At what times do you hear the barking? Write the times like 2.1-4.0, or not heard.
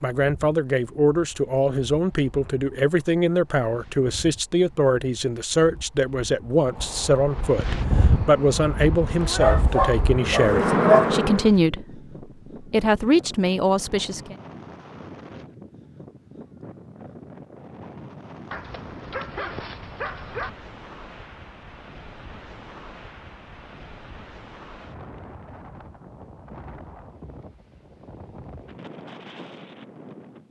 9.2-11.2, 18.5-20.5.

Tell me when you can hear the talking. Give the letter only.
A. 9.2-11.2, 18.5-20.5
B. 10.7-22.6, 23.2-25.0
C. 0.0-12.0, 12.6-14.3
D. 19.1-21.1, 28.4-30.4
C.